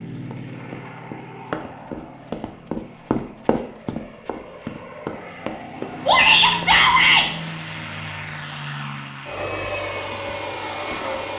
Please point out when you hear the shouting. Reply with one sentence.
The shouting can be heard from 6.0 to 7.2 s.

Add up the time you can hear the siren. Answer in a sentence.
The siren can't be heard in this clip.